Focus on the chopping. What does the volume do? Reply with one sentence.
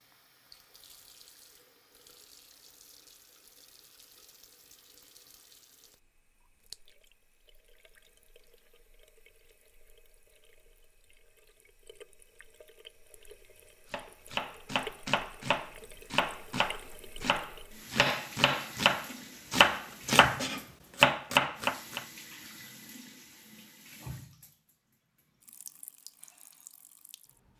The volume of the chopping goes up.